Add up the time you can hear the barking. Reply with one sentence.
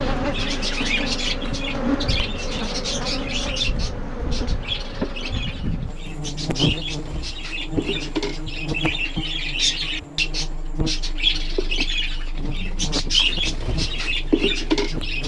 The barking can't be heard in this clip.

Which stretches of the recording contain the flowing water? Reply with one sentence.
You can't hear the flowing water here.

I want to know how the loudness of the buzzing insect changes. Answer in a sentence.
The volume of the buzzing insect goes down.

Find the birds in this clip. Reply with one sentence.
You can hear the birds from 0.0 to 15.2 s.